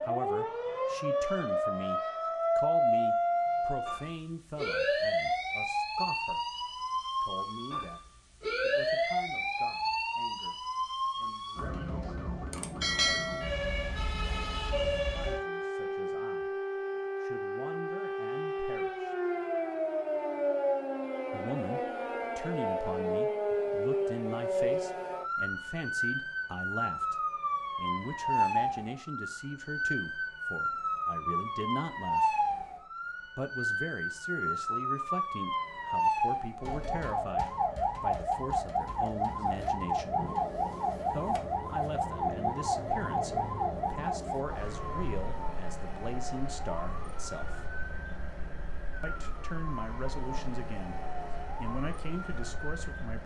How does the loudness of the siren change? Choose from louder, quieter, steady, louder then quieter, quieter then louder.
quieter.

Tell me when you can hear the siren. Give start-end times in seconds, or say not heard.
0.0-53.2.